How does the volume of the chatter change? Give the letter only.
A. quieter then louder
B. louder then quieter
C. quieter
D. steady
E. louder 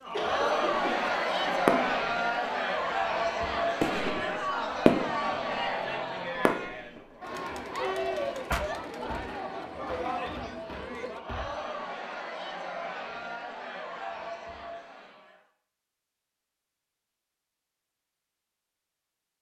C.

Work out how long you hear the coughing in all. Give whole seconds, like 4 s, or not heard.
2 s.